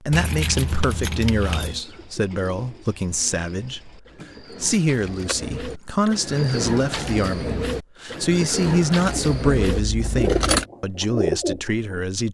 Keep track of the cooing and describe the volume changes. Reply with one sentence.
The loudness of the cooing goes up.